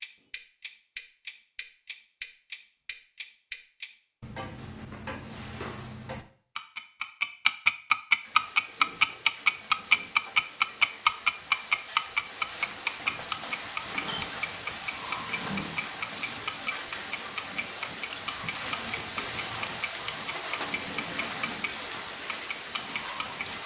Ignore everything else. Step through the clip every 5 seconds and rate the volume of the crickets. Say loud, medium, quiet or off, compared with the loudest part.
off, quiet, medium, loud, loud.